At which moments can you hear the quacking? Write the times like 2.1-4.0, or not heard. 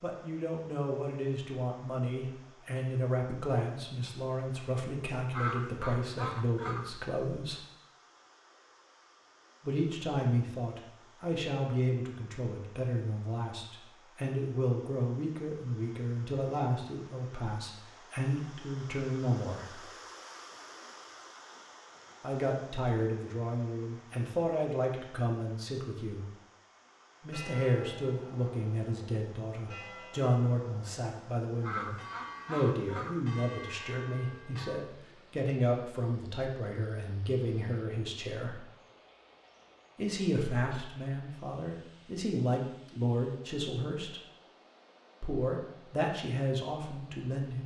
5.3-7.0, 31.6-33.2.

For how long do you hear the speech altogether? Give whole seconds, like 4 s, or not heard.
40 s.